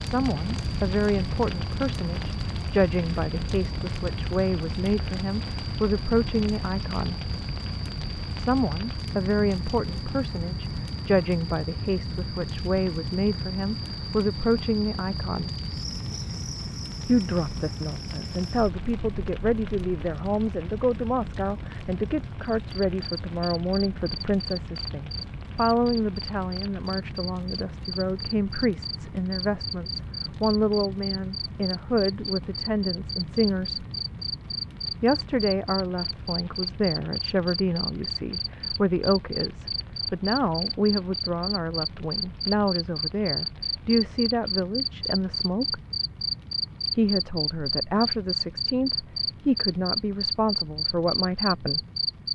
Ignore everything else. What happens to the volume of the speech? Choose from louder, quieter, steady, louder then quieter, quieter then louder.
steady.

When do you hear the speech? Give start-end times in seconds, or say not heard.
0.0-7.2, 8.3-15.5, 17.1-33.9, 35.0-45.8, 47.0-51.8.